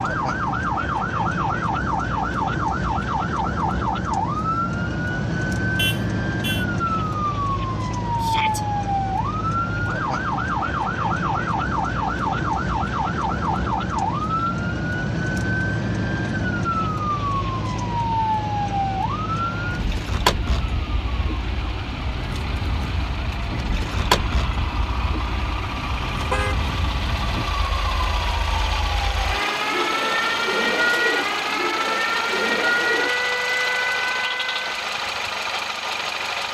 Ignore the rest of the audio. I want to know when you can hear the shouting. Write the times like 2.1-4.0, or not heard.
8.2-8.7.